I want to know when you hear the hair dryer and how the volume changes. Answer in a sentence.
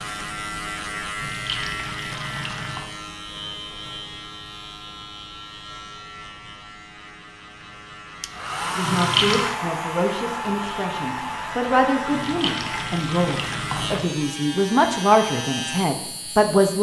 You can hear the hair dryer from 8.2 to 12.9 s, getting quieter.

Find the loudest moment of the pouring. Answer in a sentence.
The loudest moment of the pouring is at 9 seconds.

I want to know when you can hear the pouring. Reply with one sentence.
The pouring can be heard from 1.1 to 2.9 s, from 8.8 to 9.6 s and from 12.1 to 14.2 s.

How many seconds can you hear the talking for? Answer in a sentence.
The talking can be heard for 8 seconds in total.